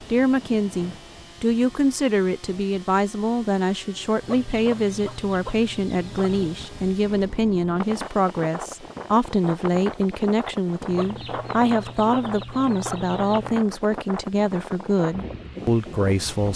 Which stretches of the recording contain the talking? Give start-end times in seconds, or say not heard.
0.1-16.5.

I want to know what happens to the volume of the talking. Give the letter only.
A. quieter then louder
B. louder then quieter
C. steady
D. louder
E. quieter
C.